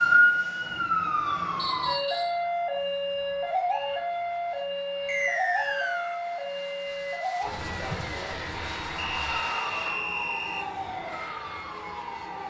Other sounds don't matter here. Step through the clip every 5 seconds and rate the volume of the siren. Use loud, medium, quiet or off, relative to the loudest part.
loud, medium, medium.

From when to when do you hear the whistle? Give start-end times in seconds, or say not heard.
1.6-2.4, 5.0-6.2, 8.9-10.7.